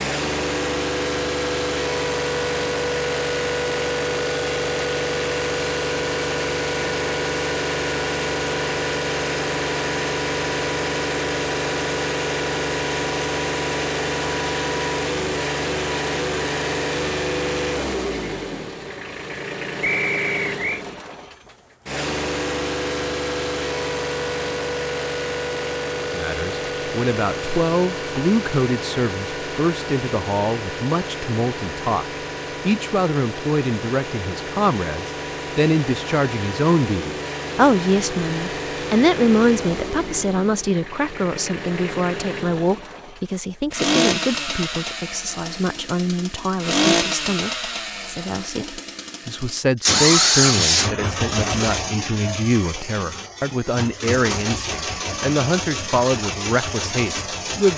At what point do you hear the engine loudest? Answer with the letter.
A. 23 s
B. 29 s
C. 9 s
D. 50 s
D.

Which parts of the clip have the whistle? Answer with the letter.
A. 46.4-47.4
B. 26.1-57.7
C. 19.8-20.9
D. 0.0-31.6
C.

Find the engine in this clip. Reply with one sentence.
You can hear the engine from 0.0 to 57.7 s.